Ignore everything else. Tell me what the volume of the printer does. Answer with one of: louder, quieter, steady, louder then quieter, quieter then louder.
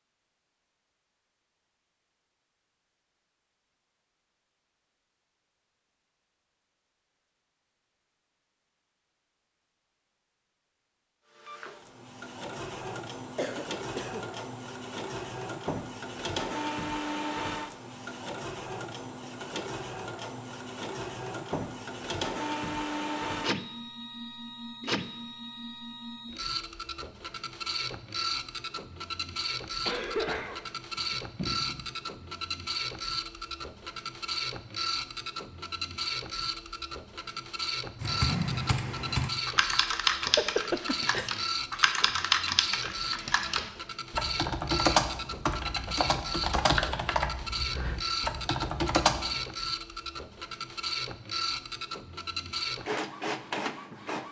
steady.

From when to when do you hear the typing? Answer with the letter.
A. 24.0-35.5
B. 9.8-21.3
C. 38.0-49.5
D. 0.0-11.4
C.